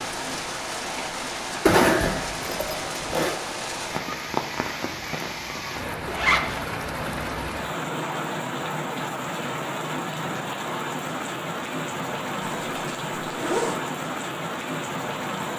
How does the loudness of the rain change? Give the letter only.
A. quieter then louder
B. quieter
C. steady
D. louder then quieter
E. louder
C.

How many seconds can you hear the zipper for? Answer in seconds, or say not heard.
4 s.